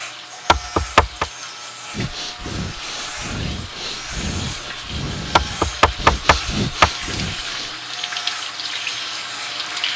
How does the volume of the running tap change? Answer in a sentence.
The volume of the running tap goes up.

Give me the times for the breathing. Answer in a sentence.
You can hear the breathing from 1.9 to 7.8 s.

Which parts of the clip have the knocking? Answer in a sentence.
You can hear the knocking from 0.5 to 1.2 s and from 5.3 to 6.9 s.